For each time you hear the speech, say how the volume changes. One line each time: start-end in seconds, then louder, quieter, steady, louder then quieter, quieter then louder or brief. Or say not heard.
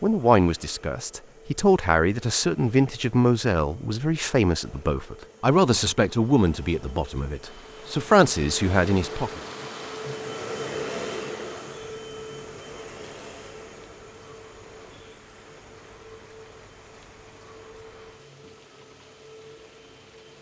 0.0-9.4 steady.